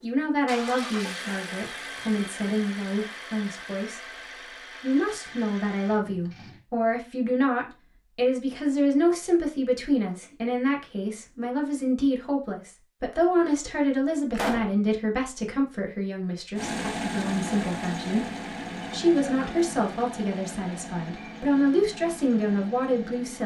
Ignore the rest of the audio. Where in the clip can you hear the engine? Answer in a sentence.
You can hear the engine from 0.0 to 6.7 s and from 16.6 to 23.4 s.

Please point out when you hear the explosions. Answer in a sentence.
You can hear the explosions from 14.3 to 14.8 s.